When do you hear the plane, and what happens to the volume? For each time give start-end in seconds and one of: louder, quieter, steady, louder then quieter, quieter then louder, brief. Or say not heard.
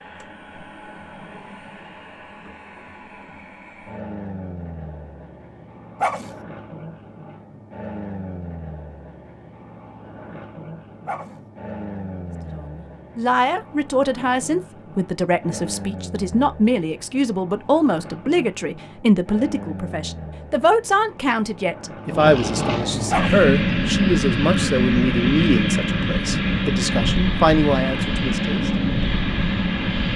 0.0-30.1 louder.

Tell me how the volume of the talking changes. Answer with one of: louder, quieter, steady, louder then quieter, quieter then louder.
steady.